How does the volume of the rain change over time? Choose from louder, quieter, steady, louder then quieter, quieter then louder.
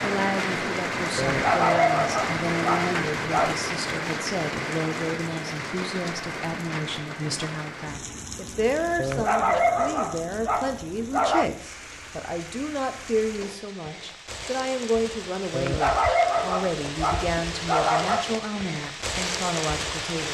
quieter then louder.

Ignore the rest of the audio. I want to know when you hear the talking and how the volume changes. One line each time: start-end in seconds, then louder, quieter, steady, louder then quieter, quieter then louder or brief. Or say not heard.
0.0-20.2 steady.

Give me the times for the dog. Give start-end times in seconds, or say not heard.
1.1-3.5, 8.9-11.4, 15.5-18.3.